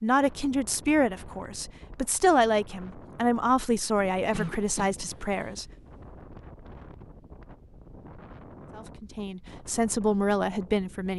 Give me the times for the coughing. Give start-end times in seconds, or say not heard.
4.3-5.5.